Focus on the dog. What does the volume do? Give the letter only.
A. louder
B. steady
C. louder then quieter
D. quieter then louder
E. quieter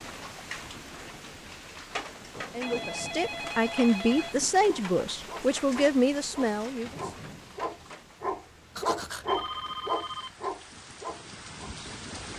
C.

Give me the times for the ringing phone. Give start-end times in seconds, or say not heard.
2.6-4.4, 8.8-10.3.